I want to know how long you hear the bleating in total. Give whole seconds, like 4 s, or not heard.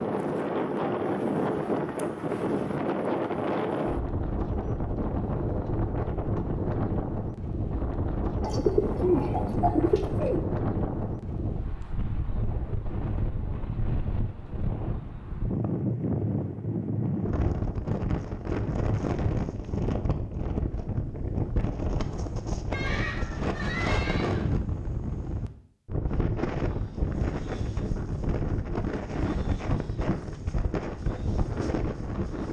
2 s.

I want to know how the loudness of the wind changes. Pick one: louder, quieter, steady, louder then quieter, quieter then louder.
steady.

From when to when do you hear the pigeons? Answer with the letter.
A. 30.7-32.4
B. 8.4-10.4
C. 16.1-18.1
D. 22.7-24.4
B.